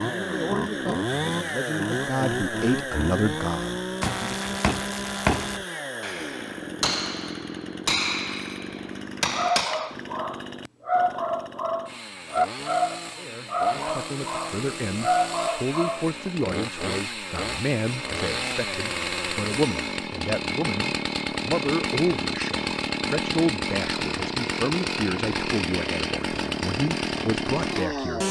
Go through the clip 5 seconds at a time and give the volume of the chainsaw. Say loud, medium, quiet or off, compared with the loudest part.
loud, medium, medium, loud, loud, loud.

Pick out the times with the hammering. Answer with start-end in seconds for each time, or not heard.
4.0-9.9.